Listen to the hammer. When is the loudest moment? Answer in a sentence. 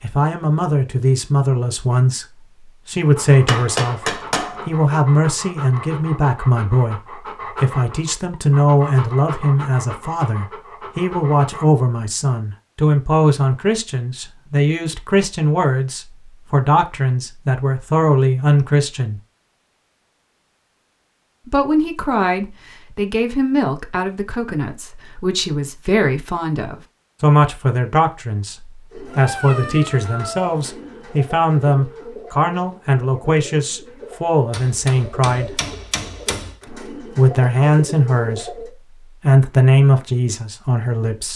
The loudest moment of the hammer is at 4 seconds.